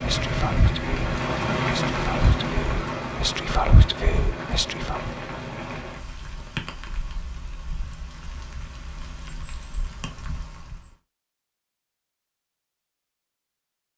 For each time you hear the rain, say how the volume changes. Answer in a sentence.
You can hear the rain from 0.0 to 10.9 s, getting quieter.